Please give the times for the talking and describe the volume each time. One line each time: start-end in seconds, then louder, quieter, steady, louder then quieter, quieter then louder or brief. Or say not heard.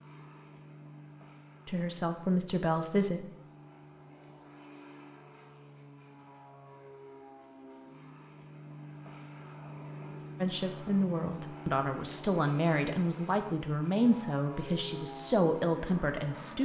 1.6-3.2 brief
10.4-16.5 steady.